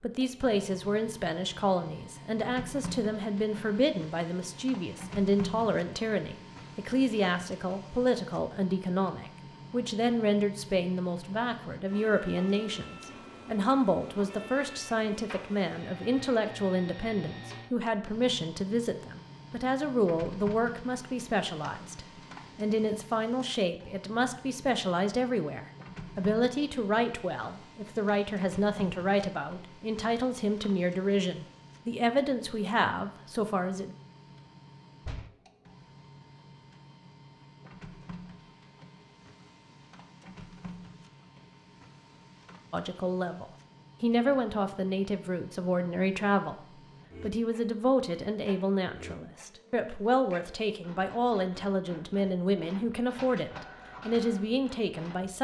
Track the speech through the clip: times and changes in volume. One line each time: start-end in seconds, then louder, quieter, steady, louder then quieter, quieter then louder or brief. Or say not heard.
0.0-34.0 steady
42.7-55.3 steady.